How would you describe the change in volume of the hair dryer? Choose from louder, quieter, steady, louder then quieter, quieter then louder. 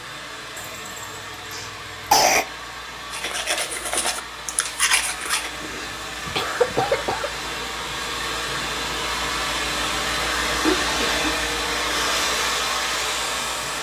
louder.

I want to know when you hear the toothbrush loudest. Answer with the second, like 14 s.
5 s.